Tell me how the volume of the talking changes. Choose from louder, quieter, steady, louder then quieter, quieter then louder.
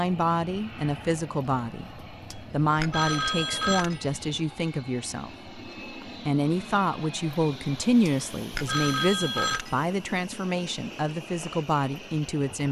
steady.